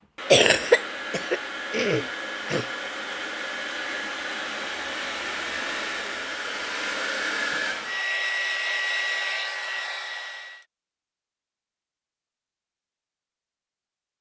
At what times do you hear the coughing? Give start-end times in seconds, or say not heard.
0.3-2.6.